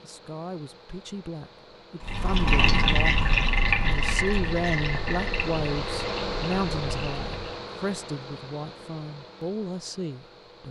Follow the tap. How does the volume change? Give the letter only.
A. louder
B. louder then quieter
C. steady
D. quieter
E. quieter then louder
D.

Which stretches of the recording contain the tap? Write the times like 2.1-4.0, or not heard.
2.0-7.6.